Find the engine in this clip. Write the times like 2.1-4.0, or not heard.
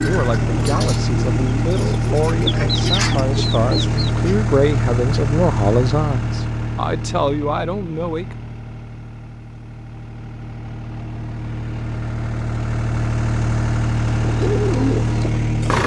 0.0-15.8.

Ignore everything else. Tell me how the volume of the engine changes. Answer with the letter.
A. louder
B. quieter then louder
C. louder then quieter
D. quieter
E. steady
B.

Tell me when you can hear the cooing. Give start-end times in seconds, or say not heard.
0.0-4.4, 14.2-15.8.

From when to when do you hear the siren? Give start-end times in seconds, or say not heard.
not heard.